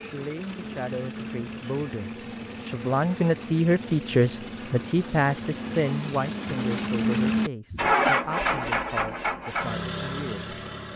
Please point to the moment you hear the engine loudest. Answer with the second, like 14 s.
8 s.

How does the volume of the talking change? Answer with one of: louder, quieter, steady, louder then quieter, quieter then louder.
louder then quieter.